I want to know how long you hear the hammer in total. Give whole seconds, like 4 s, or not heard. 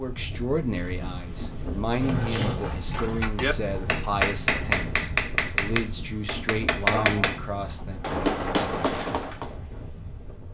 7 s.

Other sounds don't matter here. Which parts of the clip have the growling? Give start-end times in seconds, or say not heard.
1.9-2.6, 6.8-7.4.